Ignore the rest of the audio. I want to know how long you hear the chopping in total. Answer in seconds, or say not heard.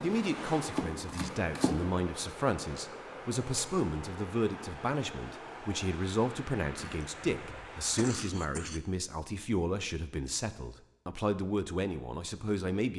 2 s.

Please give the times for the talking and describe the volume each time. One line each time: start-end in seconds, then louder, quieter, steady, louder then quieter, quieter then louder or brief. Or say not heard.
0.0-12.9 steady.